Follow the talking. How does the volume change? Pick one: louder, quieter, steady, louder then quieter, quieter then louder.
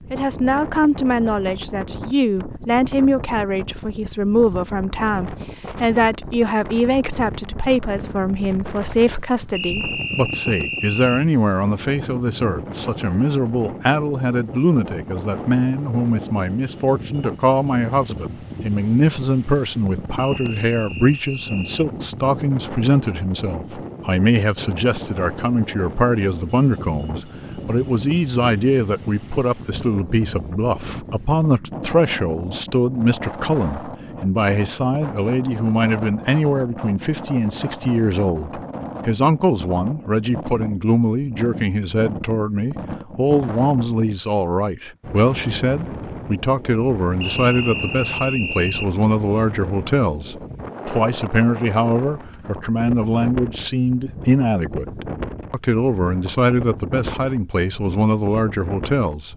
steady.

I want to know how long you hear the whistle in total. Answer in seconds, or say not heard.
5 s.